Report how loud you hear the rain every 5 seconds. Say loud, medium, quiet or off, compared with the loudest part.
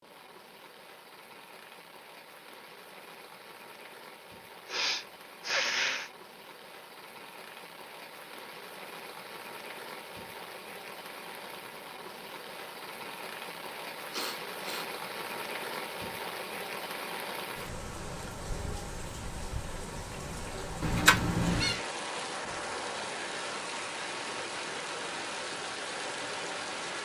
quiet, medium, medium, loud, loud, loud.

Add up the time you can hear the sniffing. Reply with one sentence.
The sniffing can be heard for 2 seconds in total.